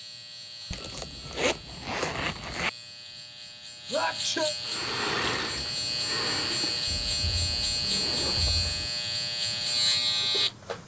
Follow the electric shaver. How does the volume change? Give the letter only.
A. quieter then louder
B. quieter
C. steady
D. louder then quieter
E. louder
E.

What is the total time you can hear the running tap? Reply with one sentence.
The running tap can be heard for 2 seconds in total.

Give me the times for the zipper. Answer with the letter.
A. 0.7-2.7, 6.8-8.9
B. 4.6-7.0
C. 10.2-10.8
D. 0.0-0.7
A.